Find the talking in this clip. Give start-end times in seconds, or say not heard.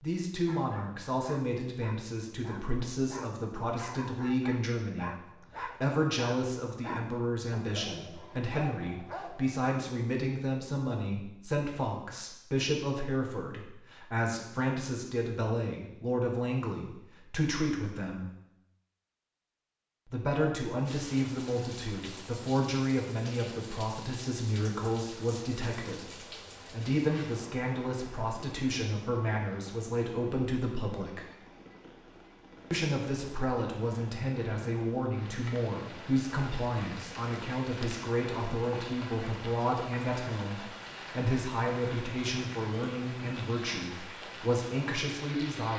0.0-18.3, 20.1-31.2, 32.7-45.7.